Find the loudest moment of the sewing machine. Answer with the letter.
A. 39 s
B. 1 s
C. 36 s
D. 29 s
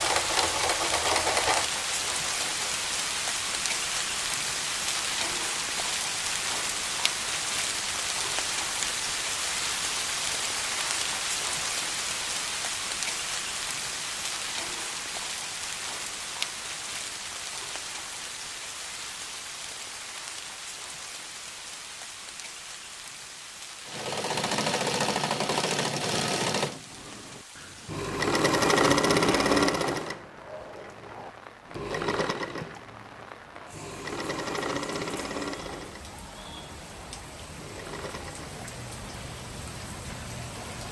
D.